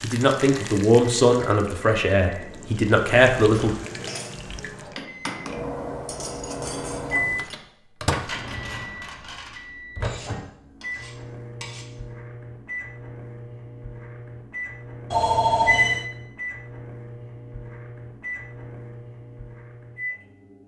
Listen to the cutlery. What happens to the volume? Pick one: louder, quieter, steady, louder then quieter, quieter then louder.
quieter.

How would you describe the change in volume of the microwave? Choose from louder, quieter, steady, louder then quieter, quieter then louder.
louder then quieter.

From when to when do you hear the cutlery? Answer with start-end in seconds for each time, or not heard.
3.5-11.9.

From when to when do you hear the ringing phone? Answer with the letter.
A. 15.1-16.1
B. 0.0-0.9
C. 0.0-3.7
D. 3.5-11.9
A.